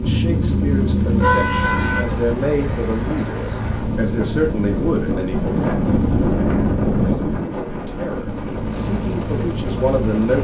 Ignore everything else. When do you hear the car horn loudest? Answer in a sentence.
The loudest moment of the car horn is at 1 second.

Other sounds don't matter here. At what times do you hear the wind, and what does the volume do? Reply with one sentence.
You can hear the wind from 1.6 to 10.3 s, getting louder then quieter.